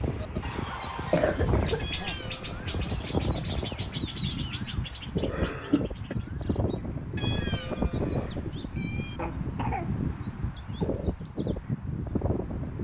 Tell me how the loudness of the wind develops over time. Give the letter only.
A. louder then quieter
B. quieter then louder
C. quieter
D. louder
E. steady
E.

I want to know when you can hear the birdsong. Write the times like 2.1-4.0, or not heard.
0.0-12.7.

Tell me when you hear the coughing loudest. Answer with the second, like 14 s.
1 s.